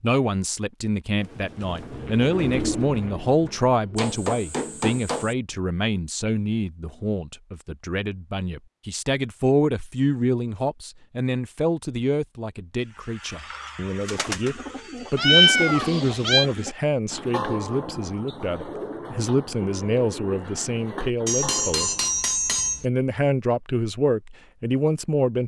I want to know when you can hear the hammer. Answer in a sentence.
The hammer can be heard from 4.0 to 5.3 s and from 21.2 to 22.9 s.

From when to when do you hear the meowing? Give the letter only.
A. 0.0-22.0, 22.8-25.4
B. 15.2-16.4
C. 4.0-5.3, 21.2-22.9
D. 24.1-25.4
B.